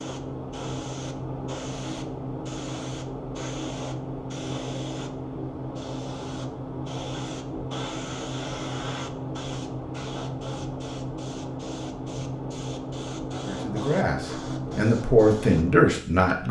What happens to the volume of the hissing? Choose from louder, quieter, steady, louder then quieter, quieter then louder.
steady.